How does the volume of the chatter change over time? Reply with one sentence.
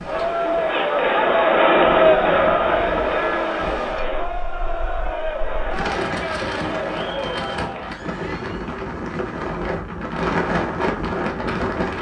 The volume of the chatter goes down.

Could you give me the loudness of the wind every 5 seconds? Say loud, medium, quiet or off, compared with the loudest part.
quiet, medium, loud.